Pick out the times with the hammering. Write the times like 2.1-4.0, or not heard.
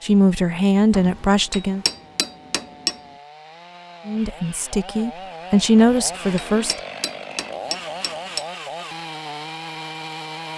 0.9-3.0, 5.8-8.4.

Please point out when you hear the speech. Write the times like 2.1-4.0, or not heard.
0.0-1.9, 4.0-6.8.